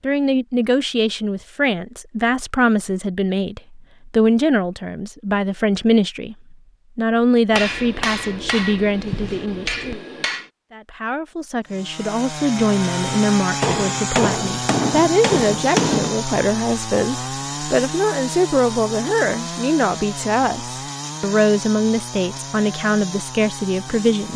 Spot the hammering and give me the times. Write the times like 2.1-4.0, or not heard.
7.5-10.5, 13.6-16.1.